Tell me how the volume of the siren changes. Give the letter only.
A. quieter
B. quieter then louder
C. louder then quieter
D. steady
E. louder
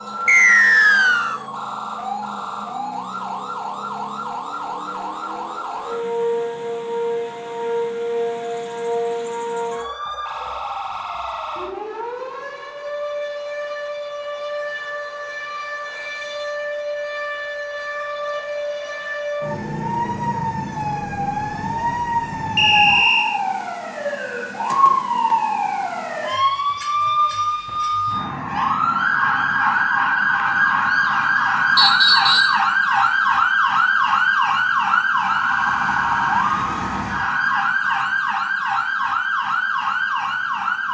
E.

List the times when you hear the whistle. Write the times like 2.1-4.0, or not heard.
0.2-1.4, 22.6-23.4, 31.8-32.6.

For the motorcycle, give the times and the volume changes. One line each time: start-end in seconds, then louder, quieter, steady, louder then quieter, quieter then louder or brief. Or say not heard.
not heard.